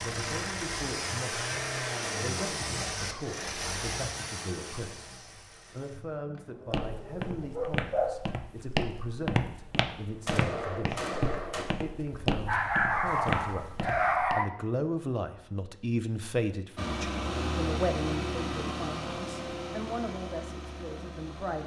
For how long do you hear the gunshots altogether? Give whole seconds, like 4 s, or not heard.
2 s.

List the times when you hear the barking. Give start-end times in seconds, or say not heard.
6.8-8.2, 12.2-14.5.